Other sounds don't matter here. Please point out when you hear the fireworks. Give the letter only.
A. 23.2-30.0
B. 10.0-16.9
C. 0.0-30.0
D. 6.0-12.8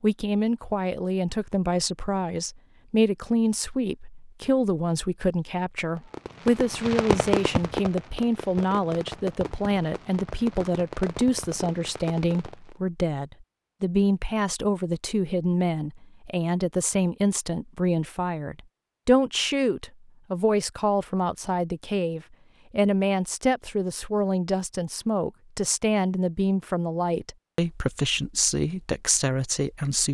D.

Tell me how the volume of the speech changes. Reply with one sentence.
The loudness of the speech stays about the same.